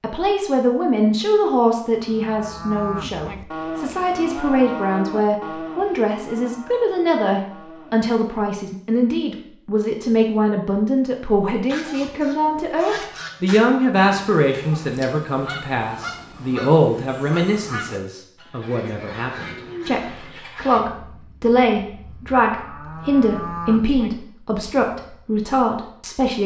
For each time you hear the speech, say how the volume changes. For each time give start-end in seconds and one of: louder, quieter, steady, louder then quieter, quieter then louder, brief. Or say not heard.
0.0-26.4 steady.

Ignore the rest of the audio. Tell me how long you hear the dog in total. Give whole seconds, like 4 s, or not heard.
not heard.